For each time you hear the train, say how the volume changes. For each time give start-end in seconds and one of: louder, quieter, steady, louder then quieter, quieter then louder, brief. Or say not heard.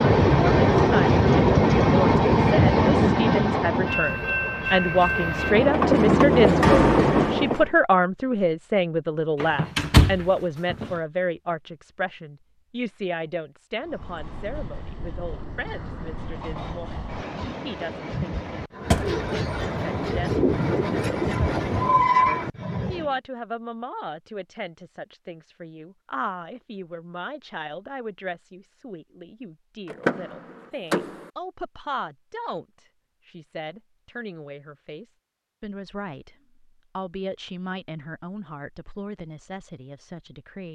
0.0-7.7 quieter then louder
13.8-23.1 louder.